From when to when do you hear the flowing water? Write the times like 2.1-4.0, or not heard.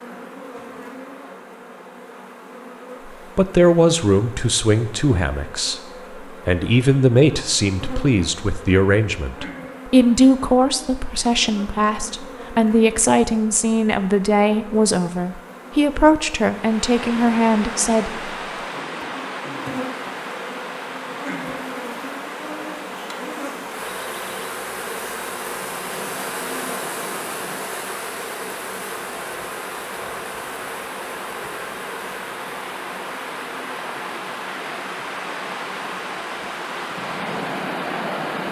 16.4-38.4.